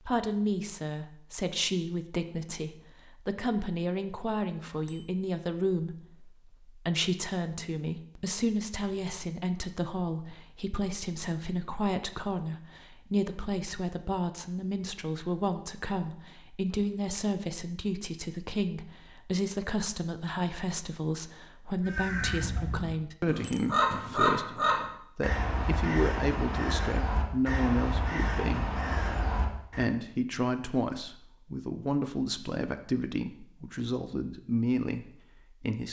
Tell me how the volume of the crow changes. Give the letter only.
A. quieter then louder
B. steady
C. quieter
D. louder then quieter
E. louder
D.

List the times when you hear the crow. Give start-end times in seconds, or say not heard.
21.9-29.9.